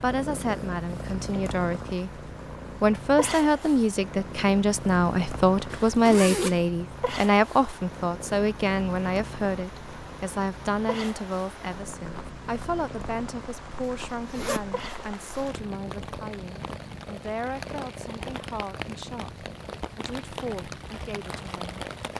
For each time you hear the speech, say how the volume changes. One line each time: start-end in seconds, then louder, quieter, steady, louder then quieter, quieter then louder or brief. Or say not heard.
0.0-2.2 brief
2.8-21.9 quieter.